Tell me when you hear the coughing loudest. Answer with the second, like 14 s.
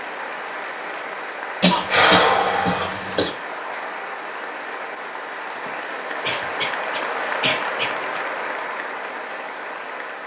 2 s.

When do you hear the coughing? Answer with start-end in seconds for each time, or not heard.
1.6-3.3, 5.5-8.2.